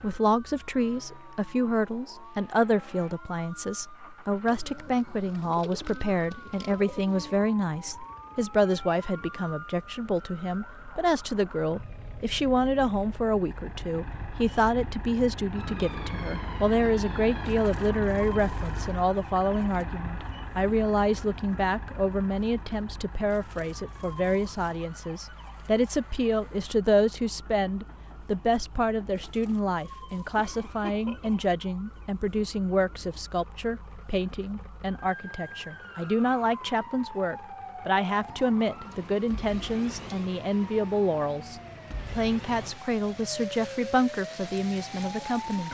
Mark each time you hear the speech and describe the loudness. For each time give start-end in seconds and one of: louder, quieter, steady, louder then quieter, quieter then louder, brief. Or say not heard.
0.0-45.6 steady.